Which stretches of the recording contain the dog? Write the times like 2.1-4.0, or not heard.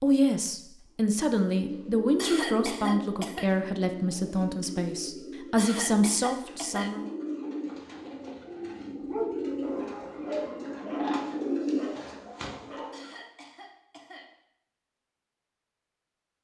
9.1-13.0.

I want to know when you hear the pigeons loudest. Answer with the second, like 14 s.
12 s.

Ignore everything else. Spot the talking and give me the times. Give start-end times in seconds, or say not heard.
0.0-7.0.